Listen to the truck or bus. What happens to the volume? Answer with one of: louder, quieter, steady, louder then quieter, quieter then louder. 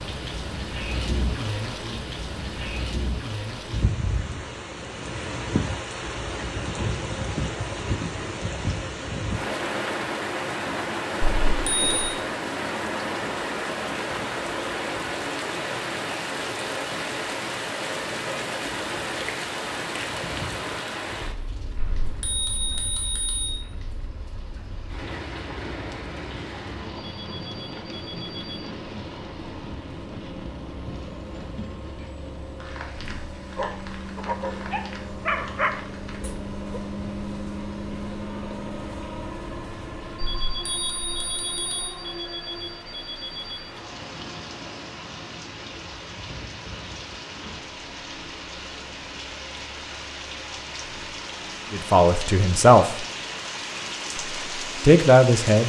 louder then quieter.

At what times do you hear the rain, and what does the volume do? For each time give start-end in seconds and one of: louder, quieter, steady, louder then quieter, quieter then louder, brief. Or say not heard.
0.0-55.6 quieter then louder.